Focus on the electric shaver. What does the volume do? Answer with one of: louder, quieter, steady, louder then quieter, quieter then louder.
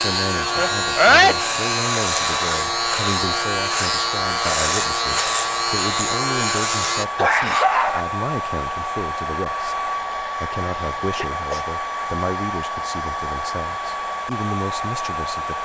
steady.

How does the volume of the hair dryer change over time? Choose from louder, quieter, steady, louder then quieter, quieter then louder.
steady.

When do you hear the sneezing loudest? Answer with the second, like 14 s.
1 s.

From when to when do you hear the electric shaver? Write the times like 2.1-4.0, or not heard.
0.0-7.0.